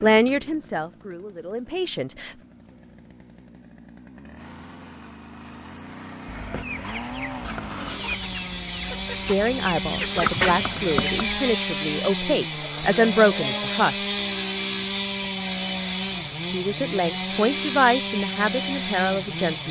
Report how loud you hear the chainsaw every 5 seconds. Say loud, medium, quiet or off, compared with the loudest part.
quiet, medium, loud, loud.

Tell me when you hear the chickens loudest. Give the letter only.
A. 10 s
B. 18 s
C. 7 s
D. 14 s
A.